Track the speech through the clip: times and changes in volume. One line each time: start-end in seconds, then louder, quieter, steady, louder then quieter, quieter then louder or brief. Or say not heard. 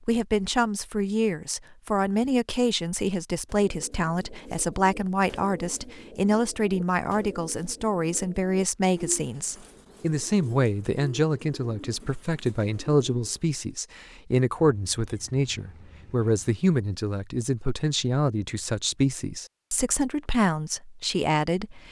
0.1-21.8 steady.